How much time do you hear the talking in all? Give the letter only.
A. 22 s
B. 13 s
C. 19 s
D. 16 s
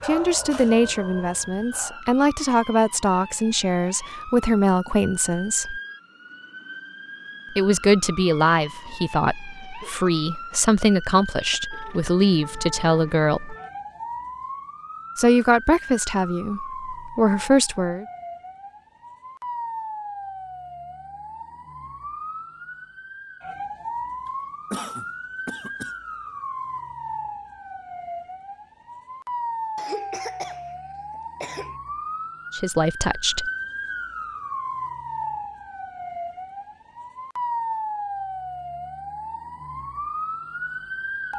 D.